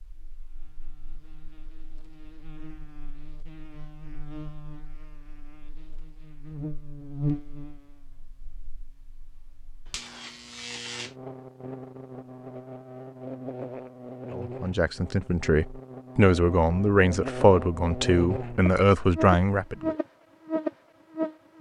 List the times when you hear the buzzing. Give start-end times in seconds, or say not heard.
0.0-21.5.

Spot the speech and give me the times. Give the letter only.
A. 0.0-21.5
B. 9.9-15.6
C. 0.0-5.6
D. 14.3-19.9
D.